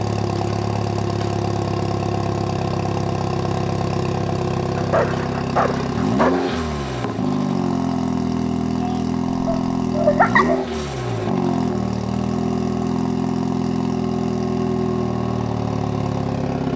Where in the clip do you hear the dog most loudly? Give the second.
10 s.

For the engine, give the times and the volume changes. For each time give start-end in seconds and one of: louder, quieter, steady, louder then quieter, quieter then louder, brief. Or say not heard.
0.0-16.7 steady.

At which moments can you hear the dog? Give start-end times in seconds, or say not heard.
4.8-6.6, 9.4-10.7.